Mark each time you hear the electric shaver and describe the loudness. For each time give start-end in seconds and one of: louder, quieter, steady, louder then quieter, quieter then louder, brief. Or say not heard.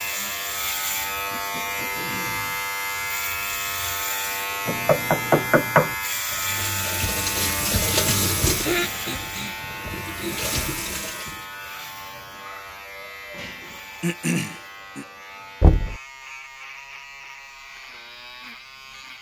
0.0-19.1 quieter.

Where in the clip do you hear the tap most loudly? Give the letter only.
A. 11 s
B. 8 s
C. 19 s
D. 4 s
B.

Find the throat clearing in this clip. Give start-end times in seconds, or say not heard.
1.3-2.7, 8.6-10.7, 14.0-15.1.